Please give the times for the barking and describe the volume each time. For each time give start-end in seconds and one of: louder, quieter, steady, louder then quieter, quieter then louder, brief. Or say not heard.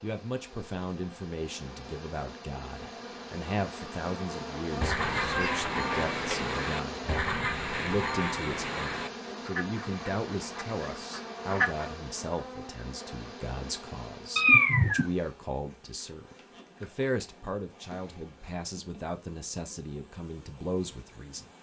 not heard.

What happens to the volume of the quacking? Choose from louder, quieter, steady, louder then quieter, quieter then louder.
quieter.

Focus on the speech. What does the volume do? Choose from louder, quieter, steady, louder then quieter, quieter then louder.
steady.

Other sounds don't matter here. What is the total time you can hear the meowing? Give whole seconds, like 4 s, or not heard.
2 s.